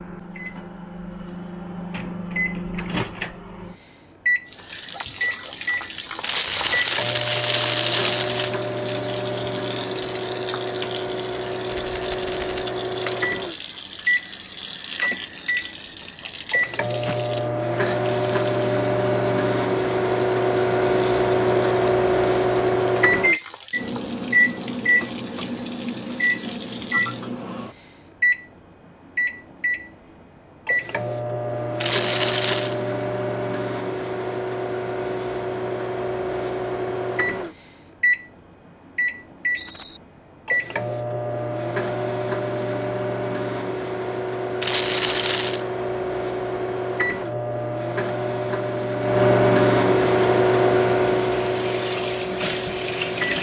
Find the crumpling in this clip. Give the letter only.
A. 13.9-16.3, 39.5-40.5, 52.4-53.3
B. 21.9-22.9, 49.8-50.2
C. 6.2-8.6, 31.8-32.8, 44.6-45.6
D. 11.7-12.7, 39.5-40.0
C.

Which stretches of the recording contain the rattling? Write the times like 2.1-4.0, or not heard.
11.7-12.7, 39.5-40.0.